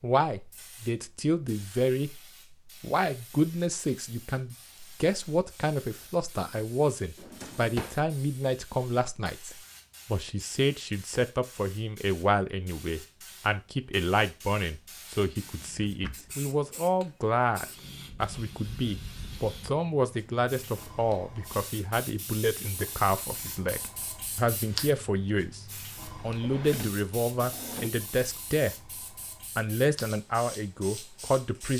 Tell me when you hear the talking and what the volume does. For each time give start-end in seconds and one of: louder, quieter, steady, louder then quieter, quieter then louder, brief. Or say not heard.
0.0-2.1 brief
2.8-28.8 steady
29.6-31.7 brief.